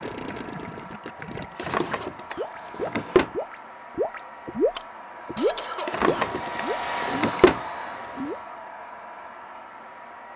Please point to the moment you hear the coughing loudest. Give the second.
6 s.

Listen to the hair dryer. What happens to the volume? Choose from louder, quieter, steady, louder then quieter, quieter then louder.
louder then quieter.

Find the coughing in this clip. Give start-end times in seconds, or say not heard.
1.6-3.0, 5.3-6.8.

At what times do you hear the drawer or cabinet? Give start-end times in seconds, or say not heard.
1.6-3.3, 5.8-7.6.